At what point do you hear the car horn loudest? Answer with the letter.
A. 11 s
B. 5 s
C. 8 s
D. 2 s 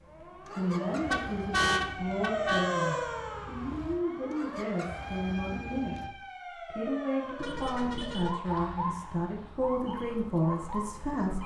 D.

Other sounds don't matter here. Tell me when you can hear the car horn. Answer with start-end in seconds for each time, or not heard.
0.8-2.8, 7.3-8.3.